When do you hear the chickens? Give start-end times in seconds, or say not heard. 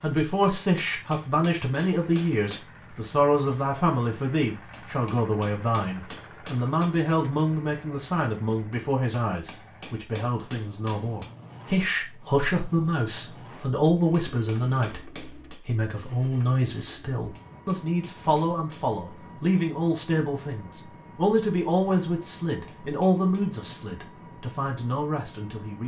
not heard.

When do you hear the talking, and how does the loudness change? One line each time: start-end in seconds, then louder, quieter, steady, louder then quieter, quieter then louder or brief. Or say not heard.
0.0-25.8 steady.